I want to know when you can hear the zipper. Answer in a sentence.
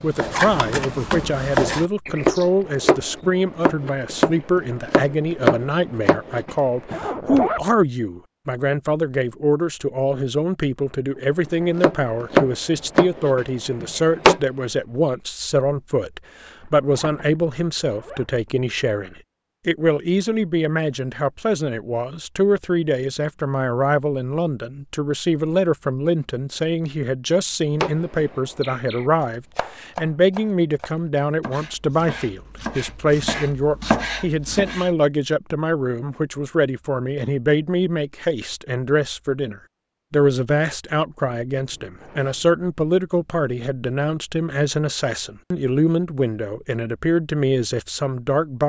You can hear the zipper from 6.8 to 7.7 s, from 16.8 to 18.2 s and from 41.7 to 42.6 s.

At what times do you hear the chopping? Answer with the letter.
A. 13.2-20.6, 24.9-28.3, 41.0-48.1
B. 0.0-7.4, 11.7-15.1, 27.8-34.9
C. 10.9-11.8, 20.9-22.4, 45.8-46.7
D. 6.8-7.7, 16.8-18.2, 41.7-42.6
B.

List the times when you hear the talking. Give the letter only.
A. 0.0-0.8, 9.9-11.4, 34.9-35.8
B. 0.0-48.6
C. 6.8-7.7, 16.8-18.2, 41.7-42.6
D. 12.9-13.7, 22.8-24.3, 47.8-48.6
B.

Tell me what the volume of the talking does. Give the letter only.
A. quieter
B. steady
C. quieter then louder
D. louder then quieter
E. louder
B.